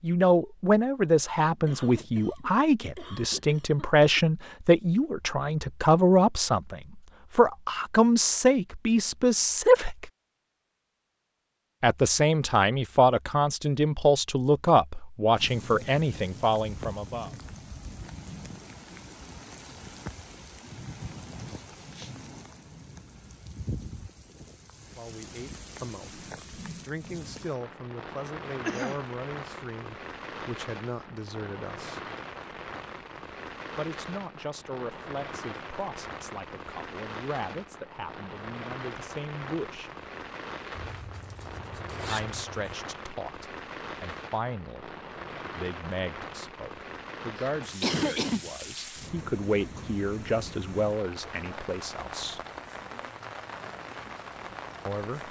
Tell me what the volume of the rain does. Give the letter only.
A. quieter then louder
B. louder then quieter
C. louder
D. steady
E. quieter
D.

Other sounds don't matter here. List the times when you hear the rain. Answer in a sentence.
The rain can be heard from 15.3 to 55.2 s.